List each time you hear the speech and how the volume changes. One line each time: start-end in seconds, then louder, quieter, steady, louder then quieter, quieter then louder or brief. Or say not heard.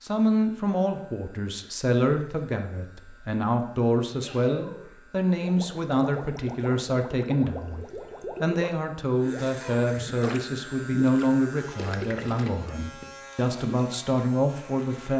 0.0-15.1 steady.